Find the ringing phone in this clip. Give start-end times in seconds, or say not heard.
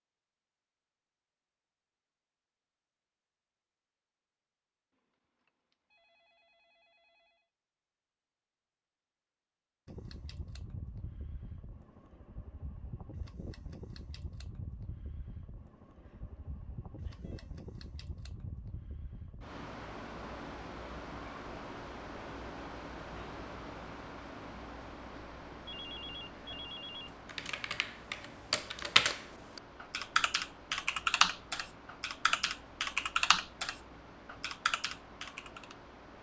4.9-7.5, 15.9-17.5, 25.6-27.1.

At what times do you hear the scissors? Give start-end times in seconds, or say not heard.
not heard.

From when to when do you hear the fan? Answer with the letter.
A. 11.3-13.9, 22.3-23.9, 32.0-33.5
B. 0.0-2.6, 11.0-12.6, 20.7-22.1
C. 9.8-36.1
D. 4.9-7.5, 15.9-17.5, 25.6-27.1
C.